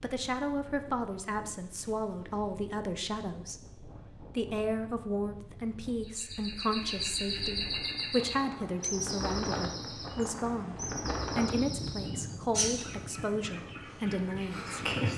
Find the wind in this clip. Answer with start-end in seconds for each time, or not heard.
0.0-15.1.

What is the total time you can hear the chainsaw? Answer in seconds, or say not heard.
not heard.